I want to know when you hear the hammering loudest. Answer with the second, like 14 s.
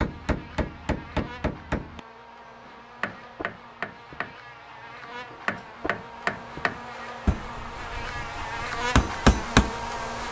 9 s.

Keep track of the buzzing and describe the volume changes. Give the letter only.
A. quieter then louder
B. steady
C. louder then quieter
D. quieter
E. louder
E.